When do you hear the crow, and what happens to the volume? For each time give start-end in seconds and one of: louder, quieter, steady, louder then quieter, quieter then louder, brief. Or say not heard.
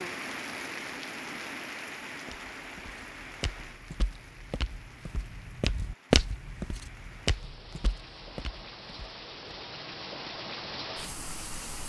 not heard.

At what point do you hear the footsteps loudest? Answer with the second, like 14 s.
6 s.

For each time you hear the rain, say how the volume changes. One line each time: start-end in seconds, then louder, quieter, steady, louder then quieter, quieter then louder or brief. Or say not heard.
0.0-11.8 quieter then louder.